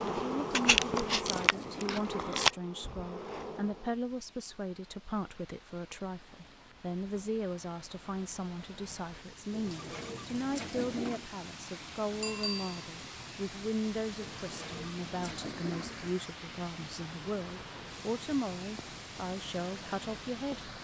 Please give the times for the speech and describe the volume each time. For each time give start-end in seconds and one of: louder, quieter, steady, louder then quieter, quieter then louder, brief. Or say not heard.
0.1-20.7 steady.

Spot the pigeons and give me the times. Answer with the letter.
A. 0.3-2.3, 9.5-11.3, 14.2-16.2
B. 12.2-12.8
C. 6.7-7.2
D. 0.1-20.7
A.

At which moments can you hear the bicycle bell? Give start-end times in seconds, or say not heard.
12.2-12.8.